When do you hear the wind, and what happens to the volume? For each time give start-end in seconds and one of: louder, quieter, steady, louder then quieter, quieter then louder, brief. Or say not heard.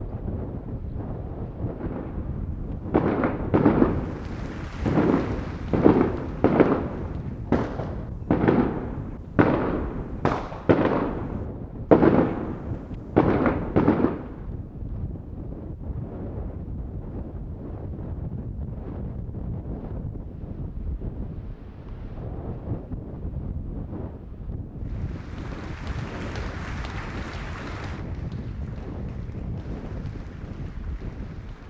0.0-31.6 steady.